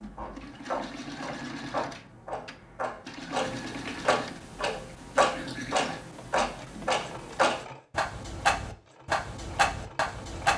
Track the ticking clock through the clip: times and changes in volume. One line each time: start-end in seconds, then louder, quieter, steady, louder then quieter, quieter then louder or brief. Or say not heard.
0.0-10.5 louder.